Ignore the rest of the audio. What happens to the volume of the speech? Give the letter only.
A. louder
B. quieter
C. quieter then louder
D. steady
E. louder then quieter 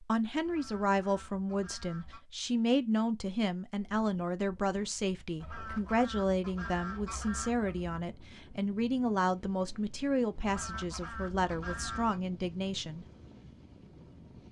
D.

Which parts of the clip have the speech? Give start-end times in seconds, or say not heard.
0.0-13.1.